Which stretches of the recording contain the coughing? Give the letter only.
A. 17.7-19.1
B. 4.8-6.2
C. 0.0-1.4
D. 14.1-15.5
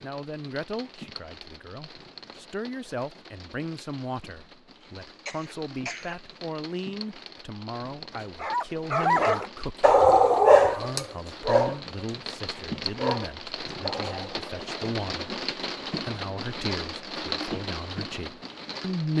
B.